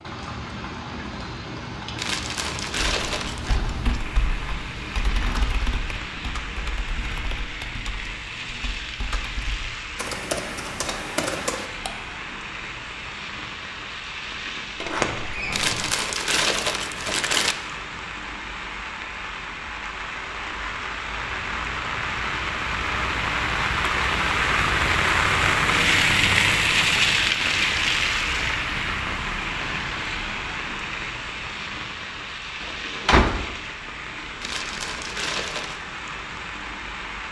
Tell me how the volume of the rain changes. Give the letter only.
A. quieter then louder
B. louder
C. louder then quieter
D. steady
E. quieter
C.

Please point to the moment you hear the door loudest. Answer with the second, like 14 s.
33 s.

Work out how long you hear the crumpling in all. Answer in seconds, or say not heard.
5 s.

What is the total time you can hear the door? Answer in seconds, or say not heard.
2 s.